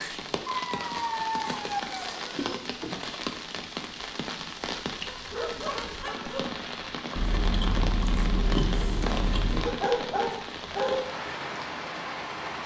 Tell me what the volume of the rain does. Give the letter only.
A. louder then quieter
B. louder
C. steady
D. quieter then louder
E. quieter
C.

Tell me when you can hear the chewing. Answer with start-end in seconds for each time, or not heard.
0.8-2.6, 7.2-9.8.